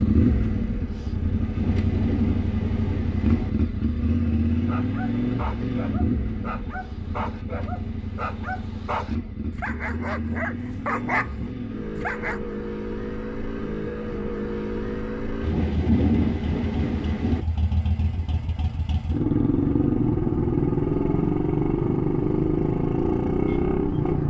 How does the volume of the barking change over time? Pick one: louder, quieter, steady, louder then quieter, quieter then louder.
louder.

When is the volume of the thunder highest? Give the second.
16 s.